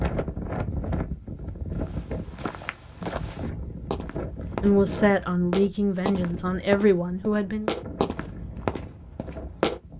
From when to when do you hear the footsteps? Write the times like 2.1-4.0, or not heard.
1.7-9.9.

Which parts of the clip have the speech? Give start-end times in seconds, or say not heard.
4.6-7.7.